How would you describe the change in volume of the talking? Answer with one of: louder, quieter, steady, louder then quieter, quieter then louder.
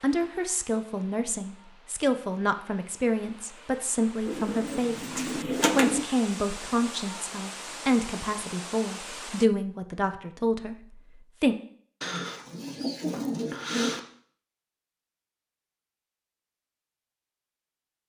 steady.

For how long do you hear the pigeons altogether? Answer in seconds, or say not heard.
4 s.